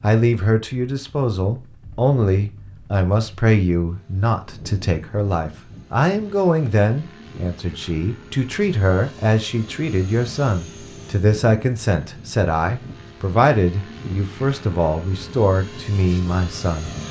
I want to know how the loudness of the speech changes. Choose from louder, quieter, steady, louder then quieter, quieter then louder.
steady.